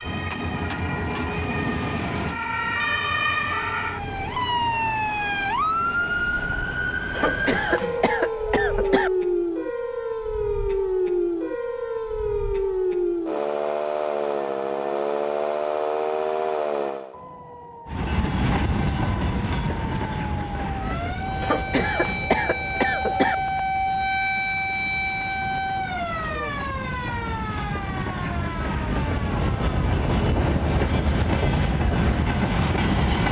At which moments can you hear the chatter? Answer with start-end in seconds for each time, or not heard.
not heard.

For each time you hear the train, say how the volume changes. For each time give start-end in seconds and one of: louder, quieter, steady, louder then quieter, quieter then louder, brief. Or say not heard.
0.0-8.3 quieter
17.9-33.2 quieter then louder.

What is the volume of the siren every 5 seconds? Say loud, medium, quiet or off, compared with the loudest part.
loud, loud, loud, loud, loud, medium, off.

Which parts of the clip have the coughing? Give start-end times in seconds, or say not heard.
7.2-9.1, 21.4-23.4.